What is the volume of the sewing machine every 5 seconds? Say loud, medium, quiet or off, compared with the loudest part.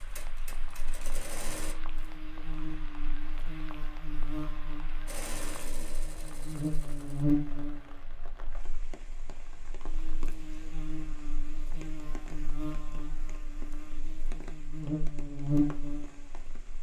loud, loud, off, off.